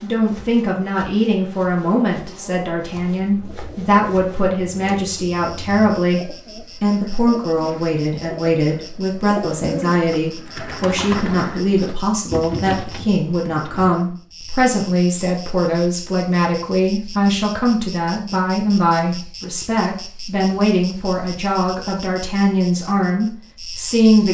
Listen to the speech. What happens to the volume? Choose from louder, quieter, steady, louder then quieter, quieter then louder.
steady.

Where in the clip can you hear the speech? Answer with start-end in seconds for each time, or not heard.
0.0-24.2.